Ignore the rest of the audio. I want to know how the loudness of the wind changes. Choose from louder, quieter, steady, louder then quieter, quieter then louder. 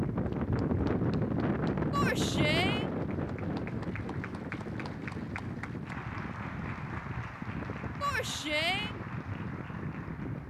quieter.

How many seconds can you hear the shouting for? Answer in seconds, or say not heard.
2 s.